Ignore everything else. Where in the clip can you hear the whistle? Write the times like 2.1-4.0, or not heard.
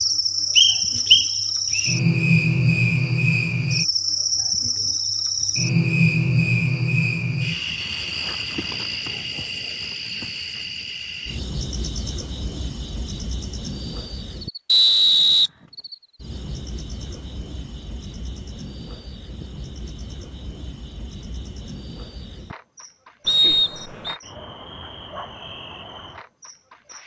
0.6-1.9, 14.7-15.5, 23.2-24.1.